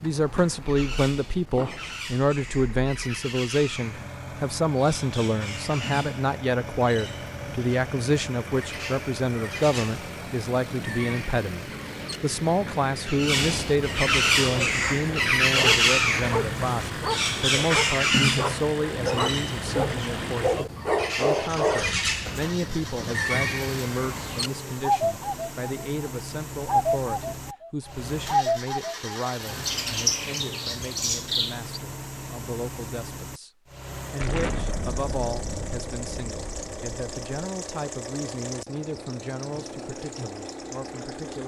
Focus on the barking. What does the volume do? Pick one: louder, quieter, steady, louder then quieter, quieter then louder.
louder.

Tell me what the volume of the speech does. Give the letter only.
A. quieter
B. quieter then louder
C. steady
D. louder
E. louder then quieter
A.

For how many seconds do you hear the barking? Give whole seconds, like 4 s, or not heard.
8 s.